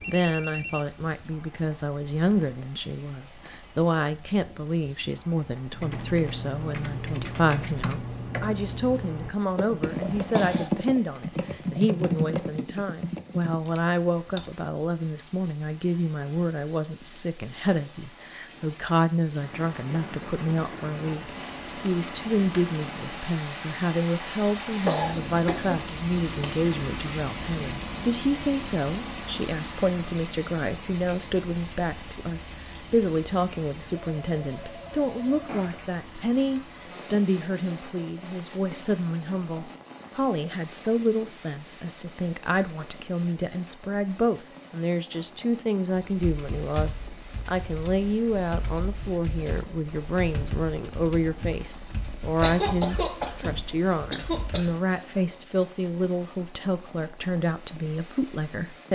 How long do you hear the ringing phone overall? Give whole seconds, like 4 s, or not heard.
3 s.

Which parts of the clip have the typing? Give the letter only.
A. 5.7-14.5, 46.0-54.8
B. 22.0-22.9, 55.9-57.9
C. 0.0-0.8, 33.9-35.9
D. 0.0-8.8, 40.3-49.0
A.